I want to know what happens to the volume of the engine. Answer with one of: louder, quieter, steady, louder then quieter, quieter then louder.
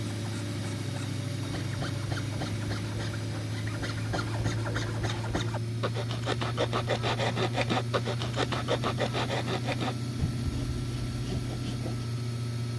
steady.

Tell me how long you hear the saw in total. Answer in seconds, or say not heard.
12 s.